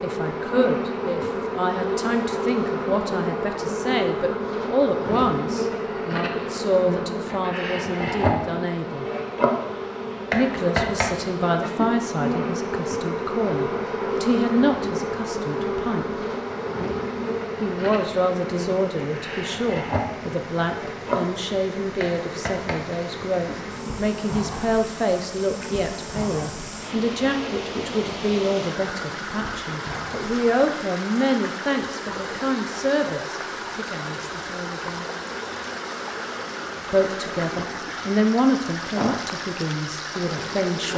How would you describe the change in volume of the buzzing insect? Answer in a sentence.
The volume of the buzzing insect goes down.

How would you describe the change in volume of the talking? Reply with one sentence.
The loudness of the talking stays about the same.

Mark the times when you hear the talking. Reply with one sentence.
You can hear the talking from 0.0 to 9.1 s, from 10.3 to 16.2 s, from 17.6 to 35.0 s and from 36.9 to 40.9 s.